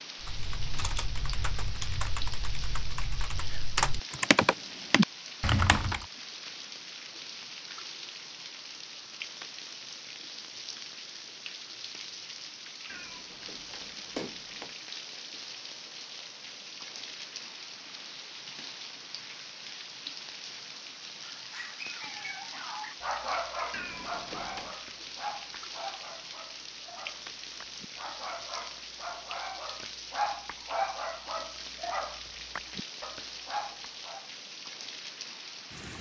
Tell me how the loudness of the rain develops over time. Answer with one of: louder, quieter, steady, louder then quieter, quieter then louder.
steady.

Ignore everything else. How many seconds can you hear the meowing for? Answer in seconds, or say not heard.
3 s.